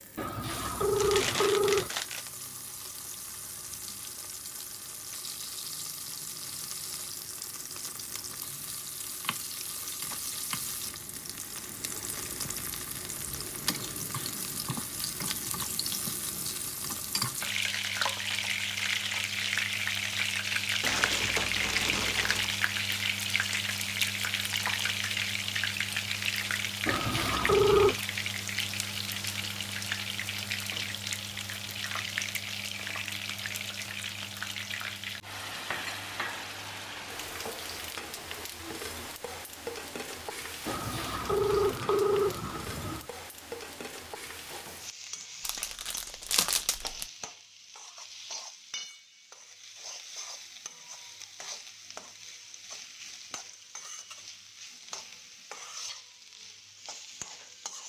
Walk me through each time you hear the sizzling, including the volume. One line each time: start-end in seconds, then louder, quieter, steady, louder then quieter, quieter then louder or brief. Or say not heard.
0.0-57.8 louder then quieter.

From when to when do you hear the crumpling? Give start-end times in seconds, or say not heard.
0.9-2.3, 20.8-22.6, 45.5-47.0.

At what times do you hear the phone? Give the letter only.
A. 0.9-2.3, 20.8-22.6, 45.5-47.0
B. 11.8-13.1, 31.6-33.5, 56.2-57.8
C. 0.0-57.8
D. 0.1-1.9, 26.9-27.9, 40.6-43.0
D.